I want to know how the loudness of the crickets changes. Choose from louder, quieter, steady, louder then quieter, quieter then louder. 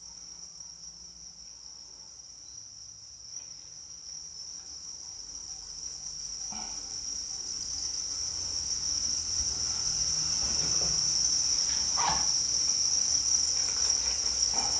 louder.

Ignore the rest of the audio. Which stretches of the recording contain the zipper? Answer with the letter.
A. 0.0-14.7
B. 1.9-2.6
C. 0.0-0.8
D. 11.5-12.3
D.